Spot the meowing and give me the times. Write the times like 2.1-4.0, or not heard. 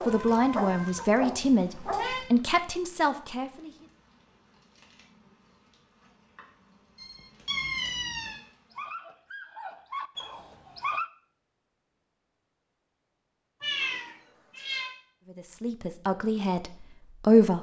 0.1-2.3, 7.0-8.4, 13.6-14.9.